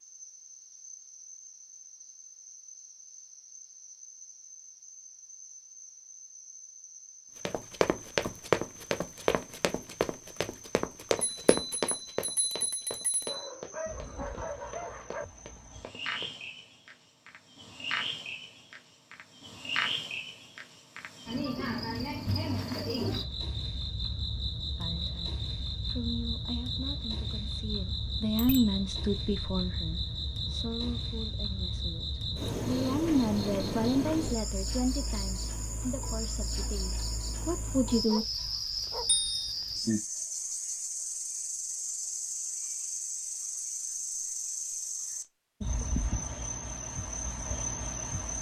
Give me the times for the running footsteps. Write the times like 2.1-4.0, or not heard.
7.5-16.4.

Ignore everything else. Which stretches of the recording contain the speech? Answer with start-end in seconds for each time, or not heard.
24.8-38.2.